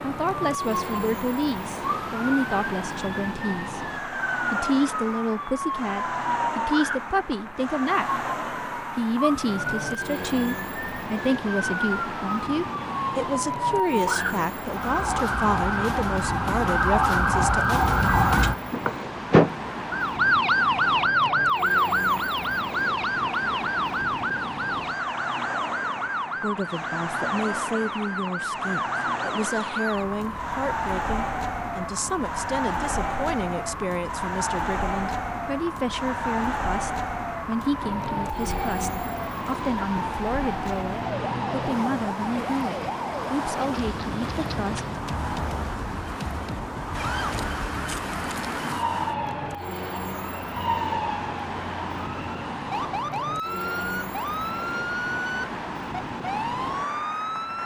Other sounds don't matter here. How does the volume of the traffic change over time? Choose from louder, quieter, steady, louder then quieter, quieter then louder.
steady.